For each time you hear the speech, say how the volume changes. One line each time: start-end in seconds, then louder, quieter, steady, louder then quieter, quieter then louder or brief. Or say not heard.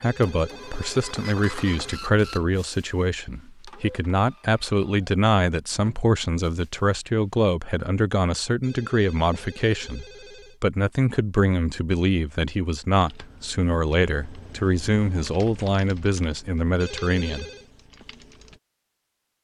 0.0-17.5 steady.